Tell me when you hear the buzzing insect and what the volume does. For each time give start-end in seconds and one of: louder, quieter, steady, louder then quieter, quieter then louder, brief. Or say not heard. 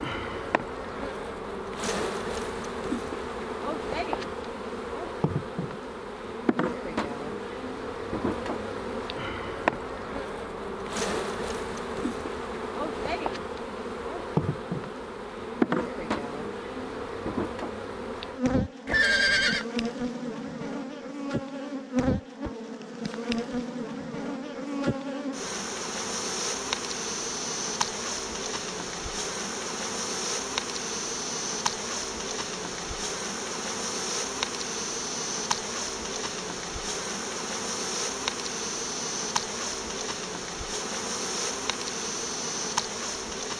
0.0-43.5 steady.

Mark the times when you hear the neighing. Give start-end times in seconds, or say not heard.
18.9-19.6.